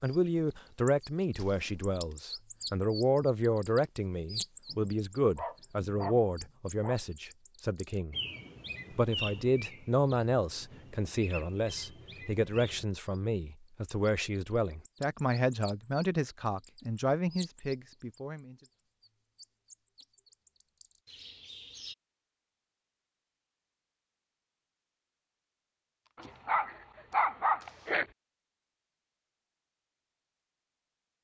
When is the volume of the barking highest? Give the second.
27 s.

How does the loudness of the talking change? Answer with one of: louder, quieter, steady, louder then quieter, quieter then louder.
steady.